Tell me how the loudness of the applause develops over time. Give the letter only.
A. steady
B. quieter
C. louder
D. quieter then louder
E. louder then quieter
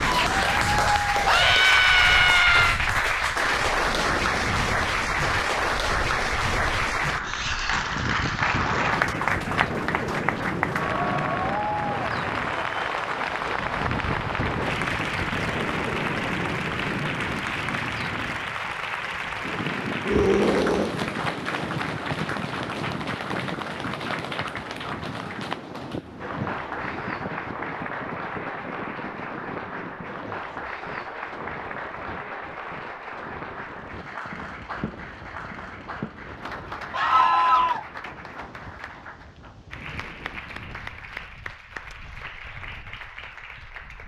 B.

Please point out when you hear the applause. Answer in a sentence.
The applause can be heard from 0.0 to 44.0 s.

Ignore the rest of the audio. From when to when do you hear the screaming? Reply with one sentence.
The screaming can be heard from 1.2 to 2.8 s, from 20.1 to 20.9 s and from 36.9 to 37.9 s.